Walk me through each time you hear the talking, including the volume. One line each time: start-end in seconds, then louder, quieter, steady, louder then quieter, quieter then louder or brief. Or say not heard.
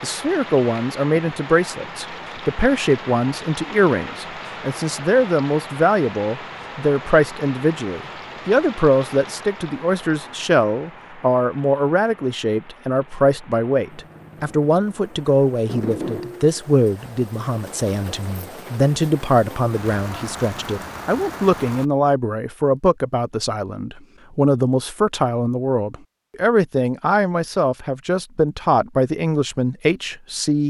0.0-30.6 steady.